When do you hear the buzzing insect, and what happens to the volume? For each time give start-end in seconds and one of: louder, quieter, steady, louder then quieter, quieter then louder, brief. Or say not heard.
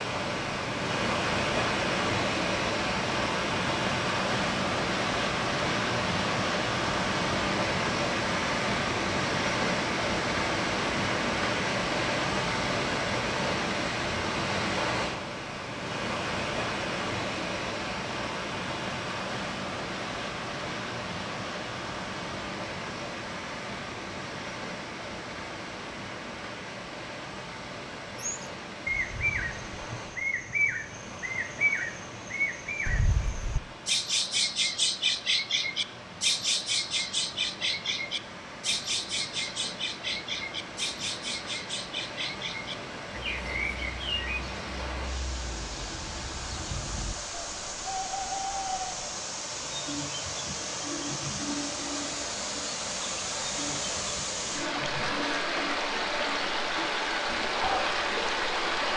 not heard.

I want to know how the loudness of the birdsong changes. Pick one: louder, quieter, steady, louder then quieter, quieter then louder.
quieter.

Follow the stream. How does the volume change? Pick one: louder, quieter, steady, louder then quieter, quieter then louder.
quieter then louder.